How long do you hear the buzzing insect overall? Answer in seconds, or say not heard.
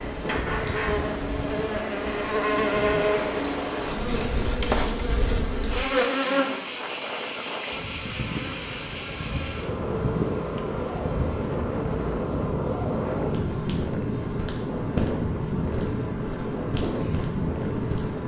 18 s.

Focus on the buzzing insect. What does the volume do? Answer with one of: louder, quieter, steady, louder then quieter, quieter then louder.
quieter.